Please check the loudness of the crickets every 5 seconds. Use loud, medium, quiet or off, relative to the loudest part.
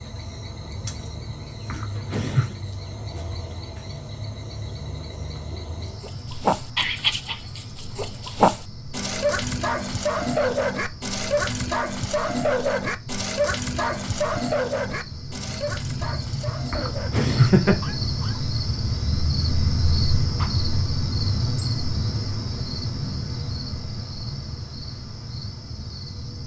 medium, medium, medium, loud, loud, medium.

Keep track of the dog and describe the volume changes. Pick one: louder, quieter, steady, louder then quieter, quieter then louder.
quieter.